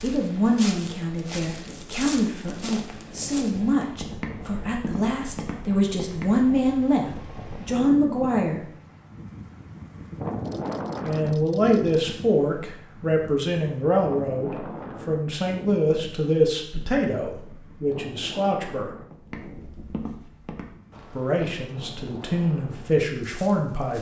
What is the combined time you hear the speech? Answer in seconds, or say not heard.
19 s.